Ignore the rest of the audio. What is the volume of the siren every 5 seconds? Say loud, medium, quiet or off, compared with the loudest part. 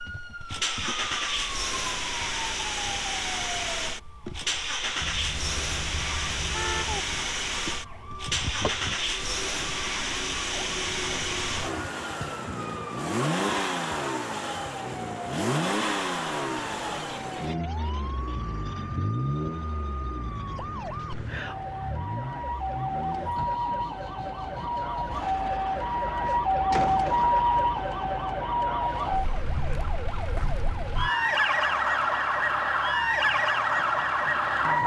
quiet, quiet, quiet, quiet, medium, loud, loud.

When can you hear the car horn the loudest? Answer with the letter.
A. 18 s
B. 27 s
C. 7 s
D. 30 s
C.